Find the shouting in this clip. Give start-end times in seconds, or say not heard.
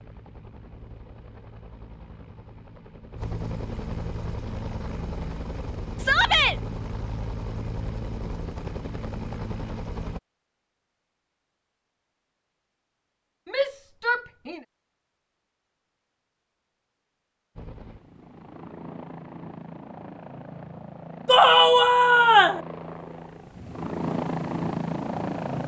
6.0-6.5, 13.4-14.6, 21.2-22.6.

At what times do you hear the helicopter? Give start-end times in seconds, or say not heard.
0.0-10.2, 17.6-25.6.